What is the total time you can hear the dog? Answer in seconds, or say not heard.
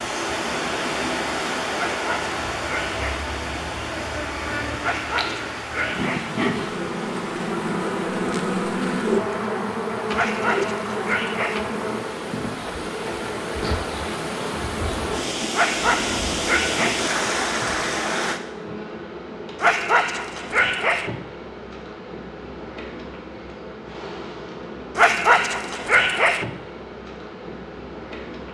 9 s.